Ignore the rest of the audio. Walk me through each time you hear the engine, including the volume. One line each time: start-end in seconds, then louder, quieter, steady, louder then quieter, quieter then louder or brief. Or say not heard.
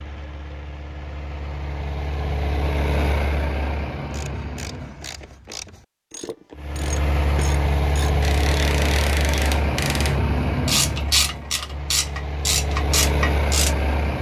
0.0-5.4 louder then quieter
6.5-14.1 quieter then louder.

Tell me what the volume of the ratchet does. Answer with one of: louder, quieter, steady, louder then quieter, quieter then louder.
louder.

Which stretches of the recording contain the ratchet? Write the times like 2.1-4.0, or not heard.
4.1-13.8.